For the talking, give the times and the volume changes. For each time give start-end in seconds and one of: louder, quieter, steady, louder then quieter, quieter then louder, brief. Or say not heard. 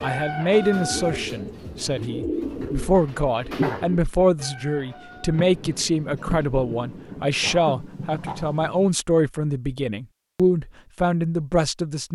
0.0-12.1 steady.